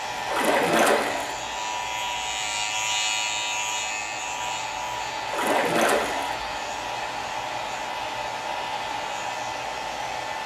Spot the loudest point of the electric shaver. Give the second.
3 s.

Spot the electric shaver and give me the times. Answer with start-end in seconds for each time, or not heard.
0.0-10.4.